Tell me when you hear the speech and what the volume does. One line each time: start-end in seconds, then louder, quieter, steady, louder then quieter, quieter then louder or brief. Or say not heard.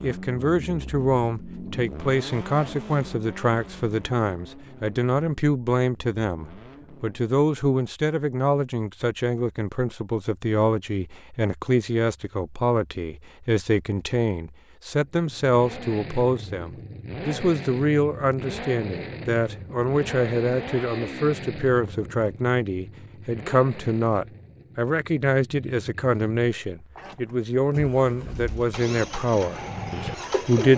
0.0-30.7 steady.